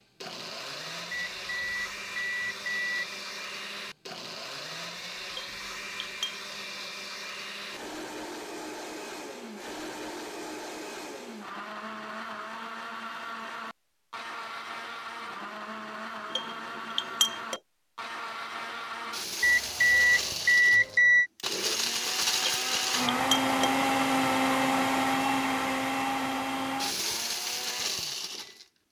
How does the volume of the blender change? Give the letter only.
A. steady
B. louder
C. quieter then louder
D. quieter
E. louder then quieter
B.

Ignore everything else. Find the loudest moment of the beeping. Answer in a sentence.
The loudest moment of the beeping is at 21 seconds.